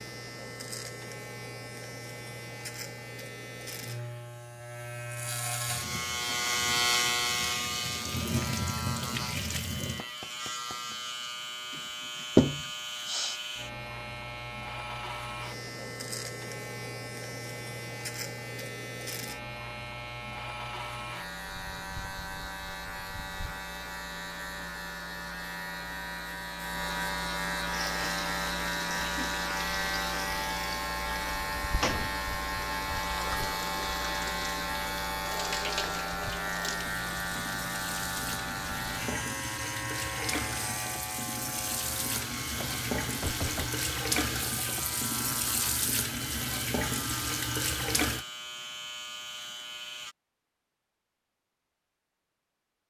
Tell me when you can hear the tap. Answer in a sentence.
The tap can be heard from 5.7 to 10.1 s and from 27.6 to 48.2 s.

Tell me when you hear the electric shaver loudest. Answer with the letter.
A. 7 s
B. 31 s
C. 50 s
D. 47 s
A.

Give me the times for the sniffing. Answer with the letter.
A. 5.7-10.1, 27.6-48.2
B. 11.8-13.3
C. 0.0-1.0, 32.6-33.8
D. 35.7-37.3
B.